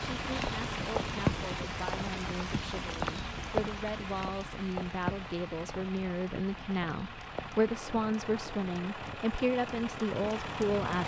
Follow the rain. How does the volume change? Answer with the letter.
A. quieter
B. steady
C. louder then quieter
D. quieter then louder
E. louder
A.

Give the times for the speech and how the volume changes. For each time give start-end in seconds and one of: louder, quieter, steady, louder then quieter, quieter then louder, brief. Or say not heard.
0.0-11.0 louder.